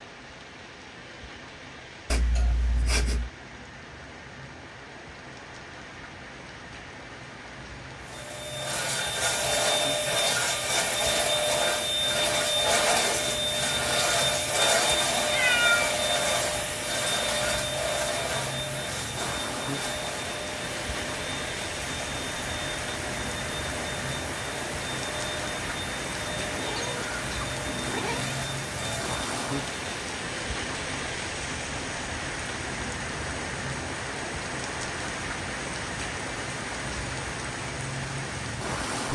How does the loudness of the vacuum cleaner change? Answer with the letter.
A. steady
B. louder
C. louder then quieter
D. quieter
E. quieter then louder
D.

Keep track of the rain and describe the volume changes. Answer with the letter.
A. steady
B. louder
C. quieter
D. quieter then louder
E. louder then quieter
B.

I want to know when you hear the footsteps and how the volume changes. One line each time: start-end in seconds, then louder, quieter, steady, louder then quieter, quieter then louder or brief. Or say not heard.
not heard.